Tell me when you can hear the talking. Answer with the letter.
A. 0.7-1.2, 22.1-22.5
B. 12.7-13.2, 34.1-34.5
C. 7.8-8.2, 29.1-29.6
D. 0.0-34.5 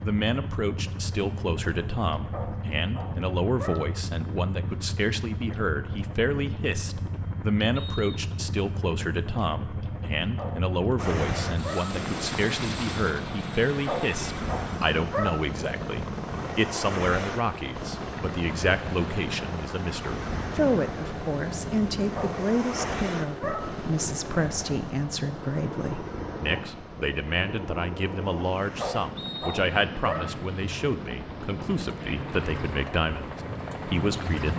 D.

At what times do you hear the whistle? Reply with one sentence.
The whistle can be heard from 7.8 to 8.2 s and from 29.1 to 29.6 s.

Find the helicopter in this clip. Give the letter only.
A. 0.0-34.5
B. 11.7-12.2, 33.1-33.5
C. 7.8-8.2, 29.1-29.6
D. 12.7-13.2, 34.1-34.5
A.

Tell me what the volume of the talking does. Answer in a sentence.
The volume of the talking stays about the same.